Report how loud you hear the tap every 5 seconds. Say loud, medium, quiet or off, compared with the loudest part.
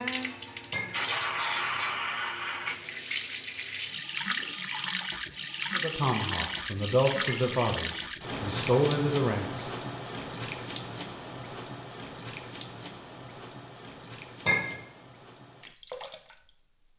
loud, loud, medium, quiet.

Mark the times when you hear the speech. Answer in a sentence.
The speech can be heard from 5.8 to 9.7 s.